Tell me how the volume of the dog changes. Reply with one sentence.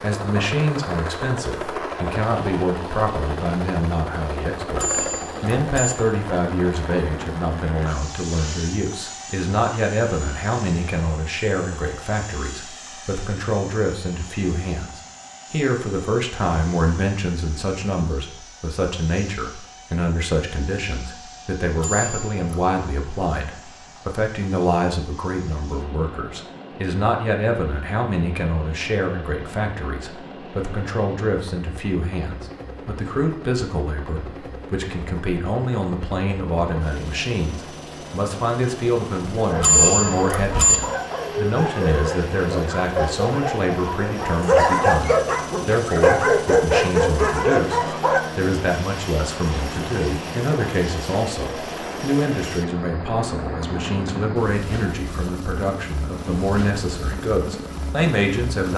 The volume of the dog goes up.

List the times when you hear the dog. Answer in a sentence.
You can hear the dog from 39.4 to 48.2 s.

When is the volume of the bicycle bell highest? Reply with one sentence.
The loudest moment of the bicycle bell is at 40 seconds.